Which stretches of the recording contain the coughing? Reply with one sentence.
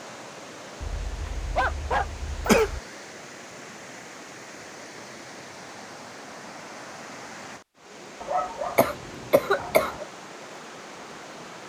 The coughing can be heard from 0.8 to 2.8 s and from 8.8 to 9.9 s.